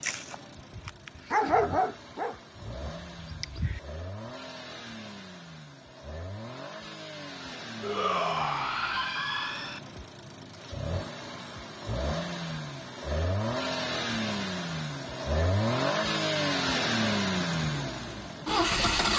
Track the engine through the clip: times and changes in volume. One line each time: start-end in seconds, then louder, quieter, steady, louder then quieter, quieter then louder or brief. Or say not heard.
0.0-19.1 louder.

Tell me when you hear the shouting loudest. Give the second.
8 s.